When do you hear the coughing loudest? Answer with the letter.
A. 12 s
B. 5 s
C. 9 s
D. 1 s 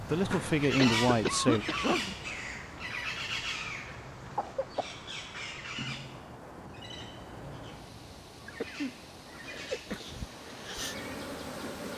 D.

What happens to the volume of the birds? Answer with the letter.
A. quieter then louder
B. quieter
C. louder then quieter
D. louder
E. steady
B.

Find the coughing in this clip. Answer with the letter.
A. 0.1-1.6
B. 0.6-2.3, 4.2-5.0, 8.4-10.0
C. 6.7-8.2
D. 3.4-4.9
B.